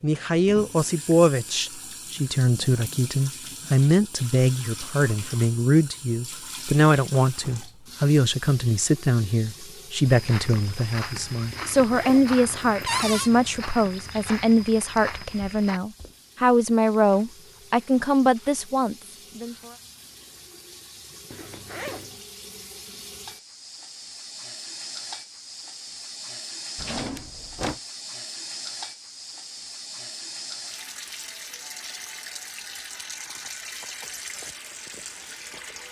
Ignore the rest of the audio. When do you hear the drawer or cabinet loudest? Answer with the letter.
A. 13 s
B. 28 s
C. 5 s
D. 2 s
A.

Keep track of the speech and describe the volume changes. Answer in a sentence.
The loudness of the speech stays about the same.